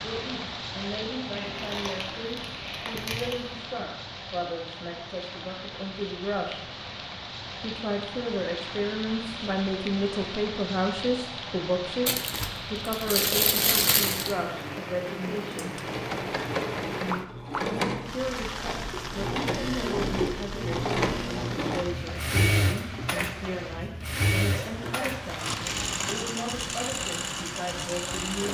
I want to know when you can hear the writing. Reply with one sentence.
You can't hear the writing here.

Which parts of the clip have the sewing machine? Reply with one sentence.
You can hear the sewing machine from 15.5 to 28.4 s.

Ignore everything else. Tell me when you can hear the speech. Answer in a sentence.
You can hear the speech from 0.0 to 6.6 s, from 7.6 to 15.8 s and from 17.6 to 28.4 s.